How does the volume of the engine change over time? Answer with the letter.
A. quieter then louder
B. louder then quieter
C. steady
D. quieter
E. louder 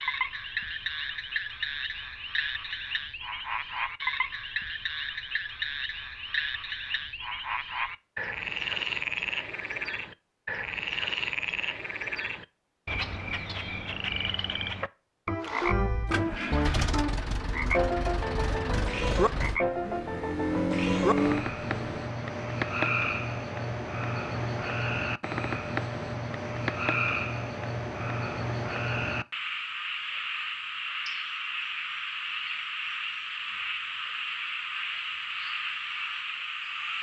E.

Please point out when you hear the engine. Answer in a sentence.
The engine can be heard from 15.4 to 22.1 s.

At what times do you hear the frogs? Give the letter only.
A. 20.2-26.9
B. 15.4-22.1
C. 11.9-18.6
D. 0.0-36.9
D.